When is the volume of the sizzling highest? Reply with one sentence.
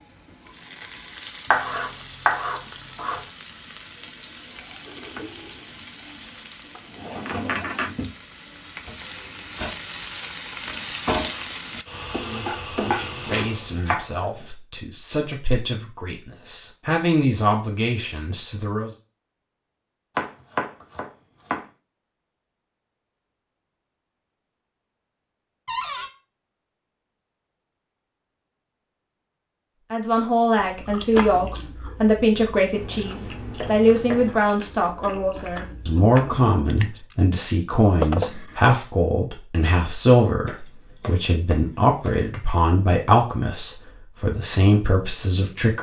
The volume of the sizzling peaks at 11 seconds.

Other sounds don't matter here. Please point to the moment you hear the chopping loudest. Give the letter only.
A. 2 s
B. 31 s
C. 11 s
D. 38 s
A.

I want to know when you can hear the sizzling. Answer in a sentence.
The sizzling can be heard from 0.0 to 13.8 s.